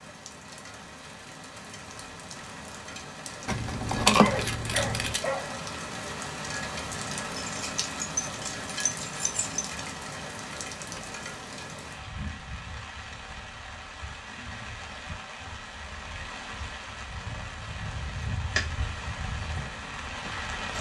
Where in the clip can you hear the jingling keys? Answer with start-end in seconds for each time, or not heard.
3.5-5.2, 7.3-9.7, 18.1-18.9.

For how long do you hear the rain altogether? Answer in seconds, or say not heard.
21 s.